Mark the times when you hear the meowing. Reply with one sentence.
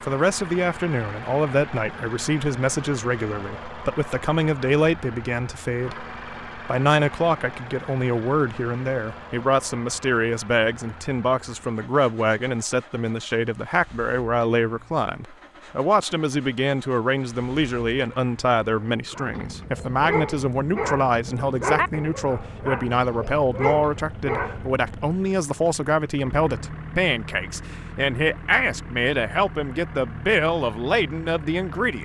The meowing can't be heard in this clip.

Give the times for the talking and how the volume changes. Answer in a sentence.
You can hear the talking from 0.0 to 32.0 s, at a steady volume.